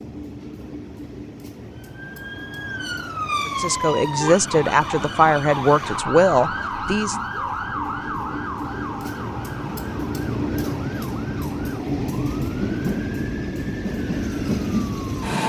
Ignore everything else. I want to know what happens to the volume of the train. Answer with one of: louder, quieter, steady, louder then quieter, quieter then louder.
louder.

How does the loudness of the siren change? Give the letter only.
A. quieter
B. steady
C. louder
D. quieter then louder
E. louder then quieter
A.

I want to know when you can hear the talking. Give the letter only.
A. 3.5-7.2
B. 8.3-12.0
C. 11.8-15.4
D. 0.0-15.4
A.